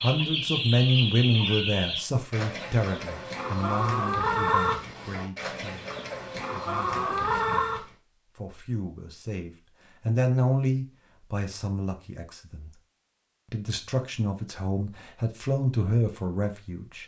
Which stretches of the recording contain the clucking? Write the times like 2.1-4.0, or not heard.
0.0-7.8.